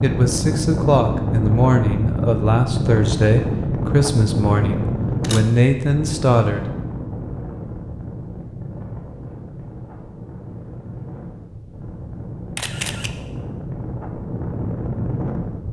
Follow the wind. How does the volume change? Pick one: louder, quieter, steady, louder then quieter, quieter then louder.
quieter then louder.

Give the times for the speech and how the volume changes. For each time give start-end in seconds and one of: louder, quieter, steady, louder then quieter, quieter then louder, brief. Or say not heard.
0.0-6.7 steady.